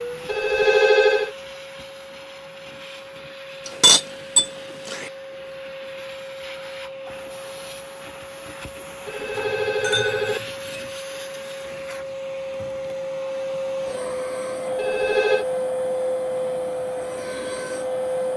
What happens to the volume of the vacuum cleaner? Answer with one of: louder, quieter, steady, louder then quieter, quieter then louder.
louder.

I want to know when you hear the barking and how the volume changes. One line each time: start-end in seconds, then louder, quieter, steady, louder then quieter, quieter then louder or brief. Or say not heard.
not heard.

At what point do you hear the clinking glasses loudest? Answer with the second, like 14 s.
4 s.